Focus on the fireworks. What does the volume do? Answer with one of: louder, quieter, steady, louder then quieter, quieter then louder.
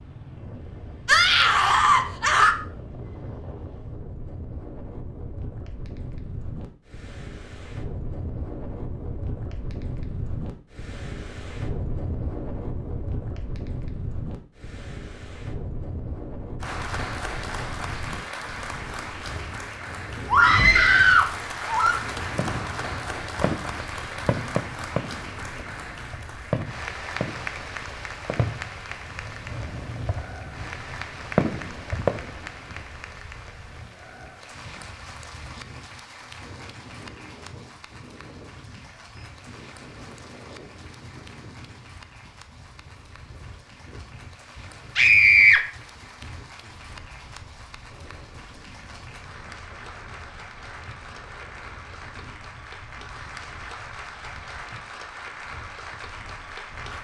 quieter then louder.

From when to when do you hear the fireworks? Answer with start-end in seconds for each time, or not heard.
22.2-32.8.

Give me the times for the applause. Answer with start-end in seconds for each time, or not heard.
16.6-56.9.